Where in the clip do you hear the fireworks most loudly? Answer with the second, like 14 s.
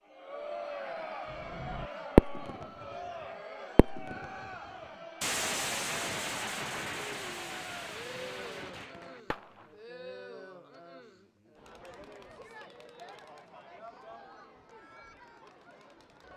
2 s.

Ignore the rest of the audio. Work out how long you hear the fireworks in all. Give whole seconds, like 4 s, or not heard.
7 s.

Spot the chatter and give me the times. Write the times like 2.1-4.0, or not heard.
0.1-16.3.